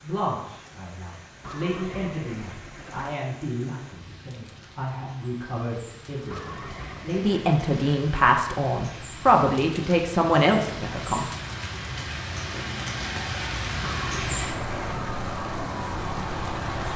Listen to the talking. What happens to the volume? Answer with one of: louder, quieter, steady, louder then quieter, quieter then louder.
louder.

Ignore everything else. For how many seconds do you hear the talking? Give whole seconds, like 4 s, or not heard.
11 s.